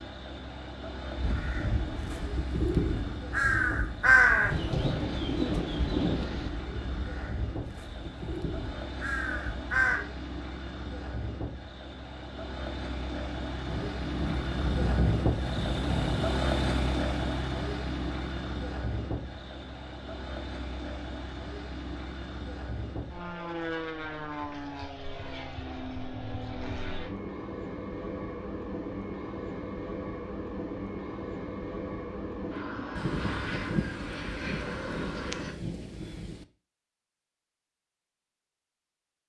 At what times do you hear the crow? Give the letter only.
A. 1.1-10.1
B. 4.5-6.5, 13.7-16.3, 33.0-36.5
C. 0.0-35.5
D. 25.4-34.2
A.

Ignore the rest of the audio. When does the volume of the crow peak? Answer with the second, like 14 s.
4 s.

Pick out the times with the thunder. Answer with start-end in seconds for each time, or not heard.
4.5-6.5, 13.7-16.3, 33.0-36.5.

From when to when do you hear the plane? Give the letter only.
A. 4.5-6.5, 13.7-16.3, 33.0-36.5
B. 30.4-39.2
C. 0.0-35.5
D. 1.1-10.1
C.